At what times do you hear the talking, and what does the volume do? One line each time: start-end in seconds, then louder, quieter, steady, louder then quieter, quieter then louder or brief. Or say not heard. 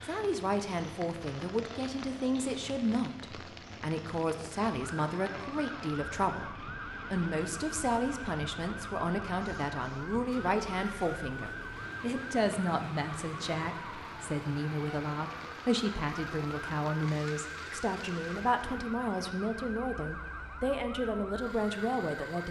0.0-22.4 steady.